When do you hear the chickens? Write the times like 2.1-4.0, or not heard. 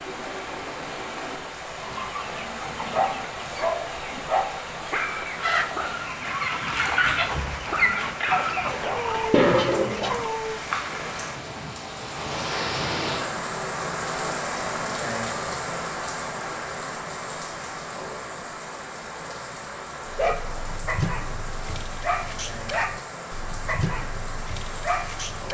1.8-10.3.